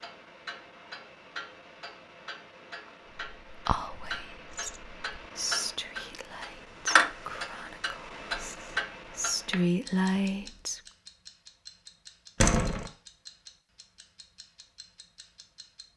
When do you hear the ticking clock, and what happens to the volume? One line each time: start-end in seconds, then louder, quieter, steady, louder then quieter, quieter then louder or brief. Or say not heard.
0.0-15.9 louder then quieter.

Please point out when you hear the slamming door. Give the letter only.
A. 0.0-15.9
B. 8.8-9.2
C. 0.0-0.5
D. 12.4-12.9
D.